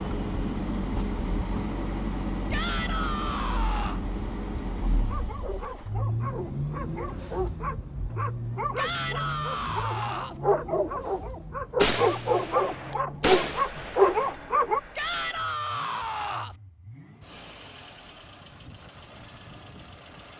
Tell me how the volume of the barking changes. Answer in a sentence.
The volume of the barking goes up.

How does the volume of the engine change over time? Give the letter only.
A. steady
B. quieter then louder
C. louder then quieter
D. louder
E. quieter
E.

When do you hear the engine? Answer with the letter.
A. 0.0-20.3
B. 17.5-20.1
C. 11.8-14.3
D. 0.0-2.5
A.